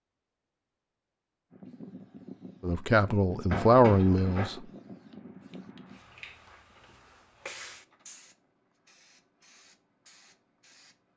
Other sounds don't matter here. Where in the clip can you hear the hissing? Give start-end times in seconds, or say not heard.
1.5-11.1.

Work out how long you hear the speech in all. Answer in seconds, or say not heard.
2 s.